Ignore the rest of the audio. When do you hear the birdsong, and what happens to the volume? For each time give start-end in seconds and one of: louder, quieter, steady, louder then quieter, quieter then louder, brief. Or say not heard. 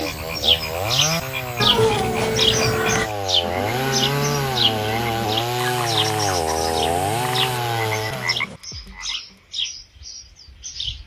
0.0-11.0 quieter.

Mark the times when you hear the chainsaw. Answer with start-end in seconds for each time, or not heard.
0.0-8.4.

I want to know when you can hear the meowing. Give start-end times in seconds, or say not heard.
1.6-3.1, 6.5-8.6.